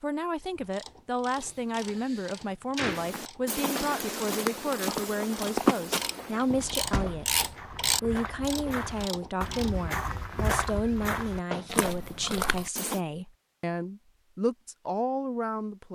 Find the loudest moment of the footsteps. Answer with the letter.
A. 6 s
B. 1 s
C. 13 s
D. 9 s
A.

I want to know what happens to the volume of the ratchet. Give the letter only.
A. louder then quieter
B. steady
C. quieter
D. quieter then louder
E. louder
A.